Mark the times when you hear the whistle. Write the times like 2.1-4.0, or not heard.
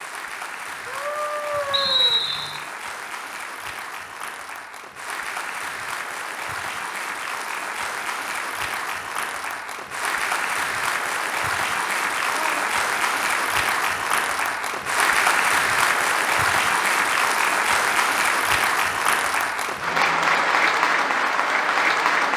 1.7-2.6.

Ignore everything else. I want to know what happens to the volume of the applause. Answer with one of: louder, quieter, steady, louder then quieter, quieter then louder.
louder.